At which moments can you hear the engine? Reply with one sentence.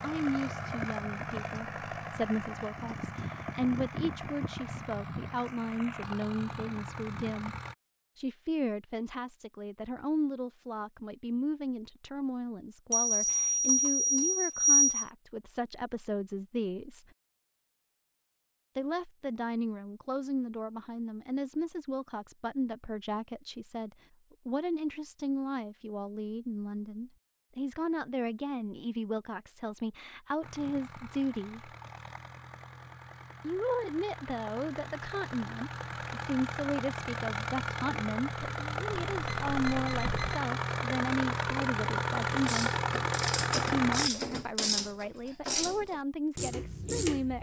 The engine can be heard from 0.0 to 7.8 s and from 30.4 to 44.1 s.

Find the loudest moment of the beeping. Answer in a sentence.
The volume of the beeping peaks at 15 seconds.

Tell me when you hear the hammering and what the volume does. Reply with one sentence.
The hammering can't be heard in this clip.